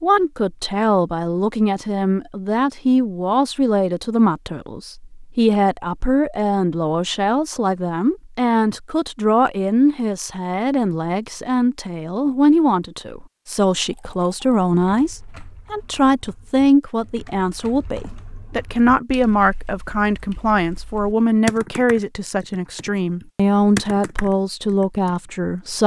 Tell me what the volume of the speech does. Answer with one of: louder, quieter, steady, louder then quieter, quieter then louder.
steady.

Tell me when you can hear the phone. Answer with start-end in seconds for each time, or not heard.
not heard.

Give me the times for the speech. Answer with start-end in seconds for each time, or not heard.
0.0-25.8.